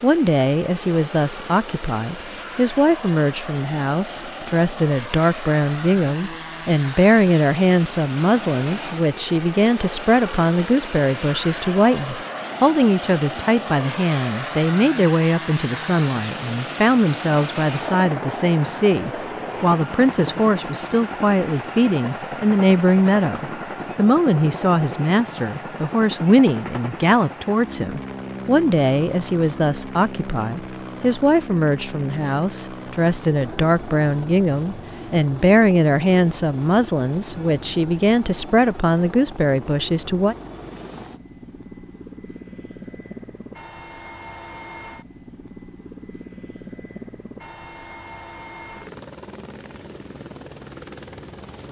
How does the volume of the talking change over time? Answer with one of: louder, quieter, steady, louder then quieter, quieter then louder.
steady.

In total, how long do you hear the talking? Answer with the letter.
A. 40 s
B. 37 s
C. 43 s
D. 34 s
A.